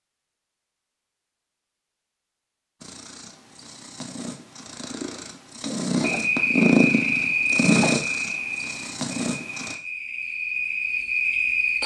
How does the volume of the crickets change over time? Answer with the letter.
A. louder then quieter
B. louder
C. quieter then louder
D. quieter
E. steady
C.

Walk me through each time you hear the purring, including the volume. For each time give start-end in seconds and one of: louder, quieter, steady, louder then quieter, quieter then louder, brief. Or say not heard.
2.8-9.8 louder then quieter.